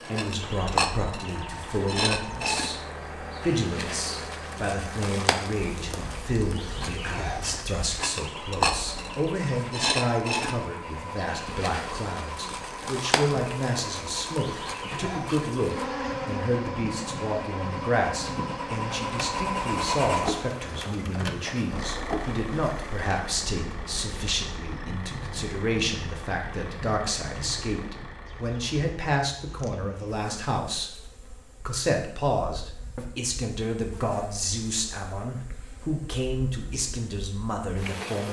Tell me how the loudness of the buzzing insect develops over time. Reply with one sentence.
The loudness of the buzzing insect goes down.